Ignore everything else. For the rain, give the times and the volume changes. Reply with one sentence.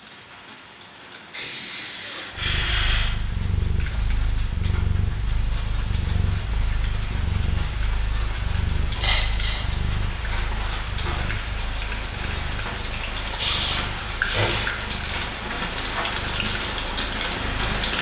The rain can be heard from 0.0 to 17.9 s, getting louder.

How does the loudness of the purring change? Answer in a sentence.
The volume of the purring goes down.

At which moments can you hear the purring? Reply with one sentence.
The purring can be heard from 2.3 to 17.8 s.